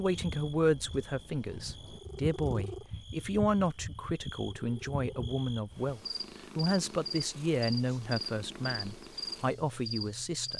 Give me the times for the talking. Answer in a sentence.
The talking can be heard from 0.0 to 10.5 s.